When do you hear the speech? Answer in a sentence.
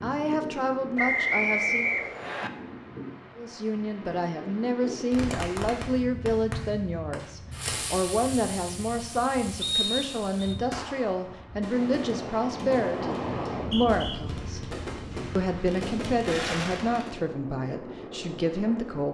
The speech can be heard from 0.0 to 1.9 s, from 3.4 to 14.6 s and from 15.3 to 19.0 s.